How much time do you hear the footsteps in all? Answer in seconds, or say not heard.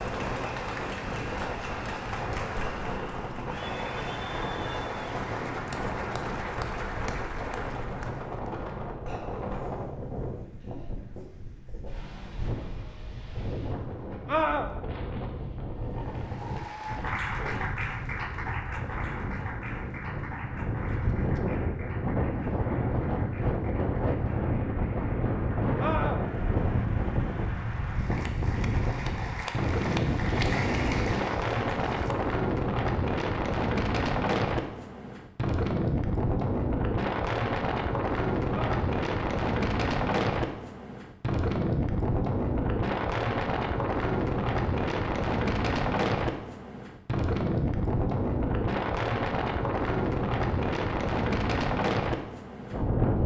not heard.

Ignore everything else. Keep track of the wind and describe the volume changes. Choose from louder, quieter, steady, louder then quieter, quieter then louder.
louder.